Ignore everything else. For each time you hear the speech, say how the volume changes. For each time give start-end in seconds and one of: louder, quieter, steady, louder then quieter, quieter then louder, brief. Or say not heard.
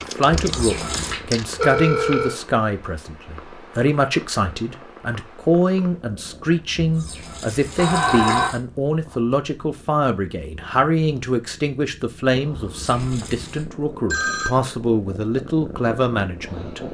0.0-16.8 steady.